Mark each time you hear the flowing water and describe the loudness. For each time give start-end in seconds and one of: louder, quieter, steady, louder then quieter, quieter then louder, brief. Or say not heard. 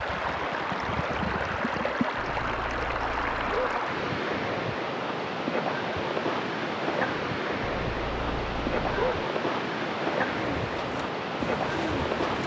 0.0-12.4 steady.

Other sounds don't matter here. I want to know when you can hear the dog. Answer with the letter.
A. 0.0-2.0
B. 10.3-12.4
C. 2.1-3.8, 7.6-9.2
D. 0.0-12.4
C.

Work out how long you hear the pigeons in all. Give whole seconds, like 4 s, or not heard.
2 s.